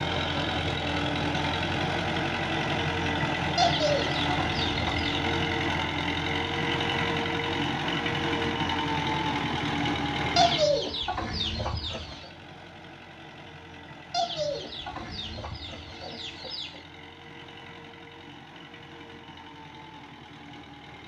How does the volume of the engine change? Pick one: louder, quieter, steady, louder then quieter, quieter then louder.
quieter.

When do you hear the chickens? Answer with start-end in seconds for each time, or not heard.
3.5-5.2, 10.3-12.3, 14.1-16.8.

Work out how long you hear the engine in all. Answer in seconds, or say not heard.
21 s.